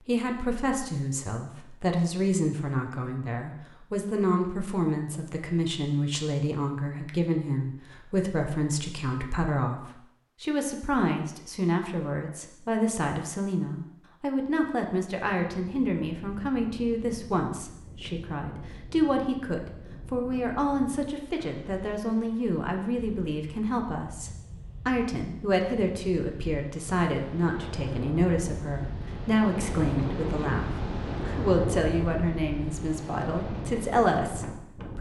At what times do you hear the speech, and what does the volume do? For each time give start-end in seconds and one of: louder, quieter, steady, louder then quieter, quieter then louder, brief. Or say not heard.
0.0-34.9 steady.